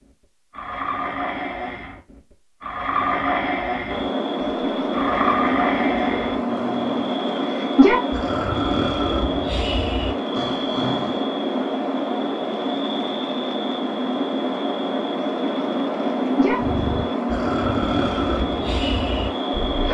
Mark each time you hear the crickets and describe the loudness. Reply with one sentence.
The crickets can be heard from 3.9 to 19.8 s, at a steady volume.